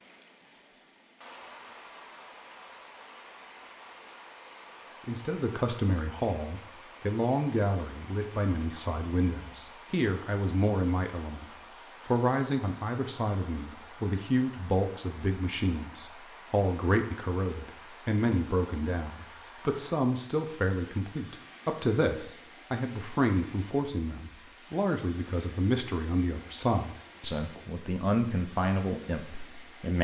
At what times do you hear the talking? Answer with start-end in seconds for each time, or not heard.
5.0-29.9.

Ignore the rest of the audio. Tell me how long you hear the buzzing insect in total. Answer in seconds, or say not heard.
not heard.